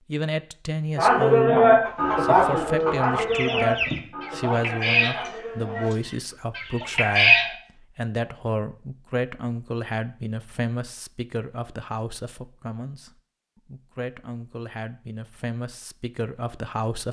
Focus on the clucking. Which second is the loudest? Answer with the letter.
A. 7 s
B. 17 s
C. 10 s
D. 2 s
A.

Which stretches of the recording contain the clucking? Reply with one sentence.
The clucking can be heard from 1.9 to 7.5 s.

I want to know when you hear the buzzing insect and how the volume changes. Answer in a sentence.
The buzzing insect can't be heard in this clip.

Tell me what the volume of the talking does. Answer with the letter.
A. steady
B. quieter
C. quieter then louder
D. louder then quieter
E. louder
B.